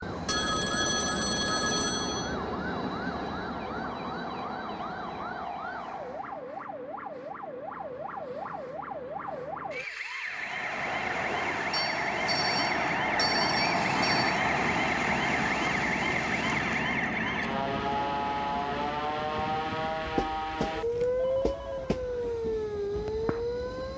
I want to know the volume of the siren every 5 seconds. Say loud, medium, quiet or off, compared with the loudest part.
quiet, medium, loud, loud, loud.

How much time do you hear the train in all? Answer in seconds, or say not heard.
20 s.